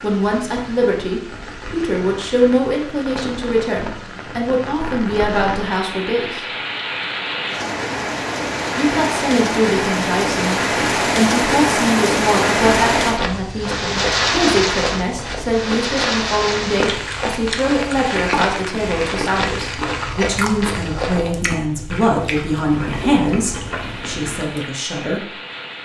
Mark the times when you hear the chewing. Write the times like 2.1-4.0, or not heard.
16.9-24.7.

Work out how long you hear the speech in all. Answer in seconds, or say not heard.
23 s.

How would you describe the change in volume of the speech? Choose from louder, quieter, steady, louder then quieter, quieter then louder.
steady.